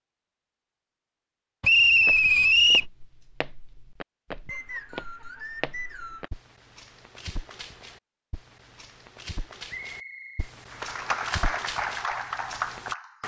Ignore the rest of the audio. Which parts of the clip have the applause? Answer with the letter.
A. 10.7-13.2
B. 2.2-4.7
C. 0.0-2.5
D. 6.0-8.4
A.